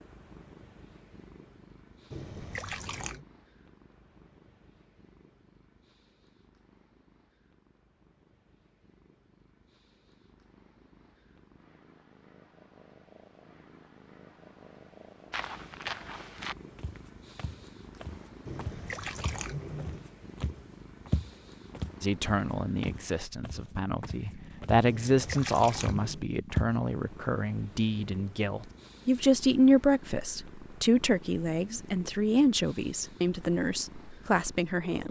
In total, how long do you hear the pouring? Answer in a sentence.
The pouring can be heard for 4 seconds in total.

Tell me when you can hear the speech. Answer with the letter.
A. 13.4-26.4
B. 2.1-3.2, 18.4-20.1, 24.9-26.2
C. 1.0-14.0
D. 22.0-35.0
D.